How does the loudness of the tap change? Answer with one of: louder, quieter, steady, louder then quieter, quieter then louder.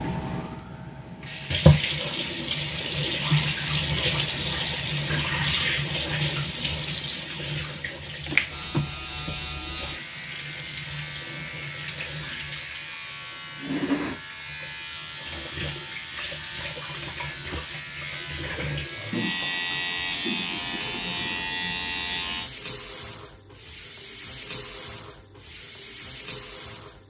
quieter.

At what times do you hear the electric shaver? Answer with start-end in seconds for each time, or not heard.
8.4-22.5.